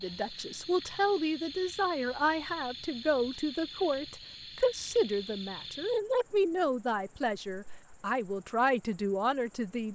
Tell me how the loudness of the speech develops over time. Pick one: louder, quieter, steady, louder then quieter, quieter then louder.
steady.